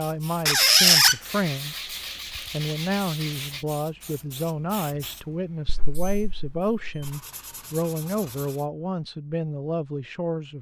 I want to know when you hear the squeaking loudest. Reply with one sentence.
The volume of the squeaking peaks at 1 second.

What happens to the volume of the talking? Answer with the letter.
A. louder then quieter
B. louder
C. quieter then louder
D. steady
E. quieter
D.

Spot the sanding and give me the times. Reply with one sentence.
You can hear the sanding from 1.2 to 3.6 s and from 7.0 to 8.7 s.